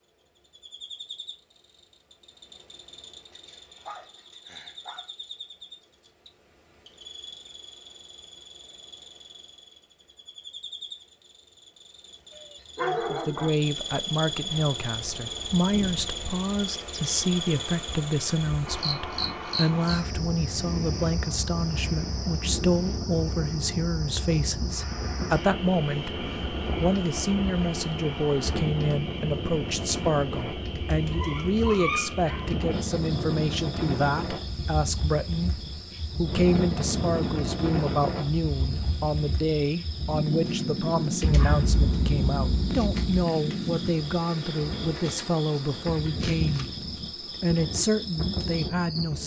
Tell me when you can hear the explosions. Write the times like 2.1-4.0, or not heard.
41.2-43.2.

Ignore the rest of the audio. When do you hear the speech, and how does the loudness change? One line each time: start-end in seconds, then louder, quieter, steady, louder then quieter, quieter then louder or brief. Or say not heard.
12.8-46.7 steady
47.4-49.2 brief.